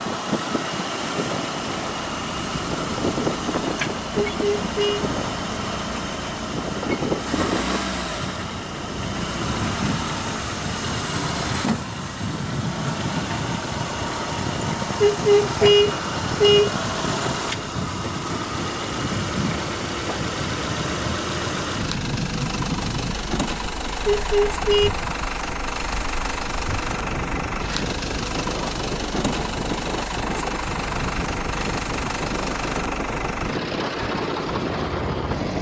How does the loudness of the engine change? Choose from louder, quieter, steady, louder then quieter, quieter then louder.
steady.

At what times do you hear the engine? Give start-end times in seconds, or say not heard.
0.0-35.5.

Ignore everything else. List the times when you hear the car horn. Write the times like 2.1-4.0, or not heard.
4.2-5.0, 15.0-16.8, 24.1-24.9.